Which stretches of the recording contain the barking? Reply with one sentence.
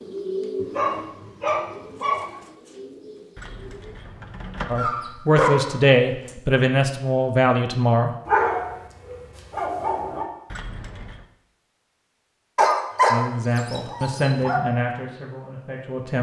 The barking can be heard from 0.6 to 2.3 s, from 4.8 to 6.3 s, from 8.2 to 10.3 s and from 12.6 to 14.6 s.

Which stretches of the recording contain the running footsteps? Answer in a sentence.
You can't hear the running footsteps here.